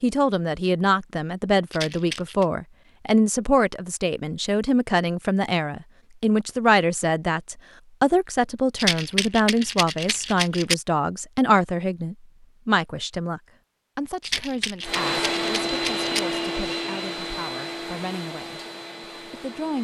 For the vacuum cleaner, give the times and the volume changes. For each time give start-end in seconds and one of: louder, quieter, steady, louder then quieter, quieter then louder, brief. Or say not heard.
14.8-19.7 quieter.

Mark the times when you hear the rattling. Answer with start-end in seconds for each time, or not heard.
1.7-2.5, 8.8-10.8, 14.2-16.2.